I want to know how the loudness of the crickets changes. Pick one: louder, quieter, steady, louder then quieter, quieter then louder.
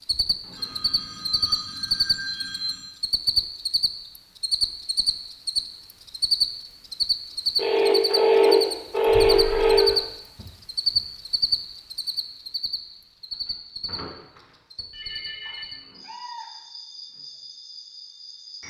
quieter.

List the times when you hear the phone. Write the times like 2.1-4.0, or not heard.
0.5-3.0, 7.5-9.8, 13.8-15.7.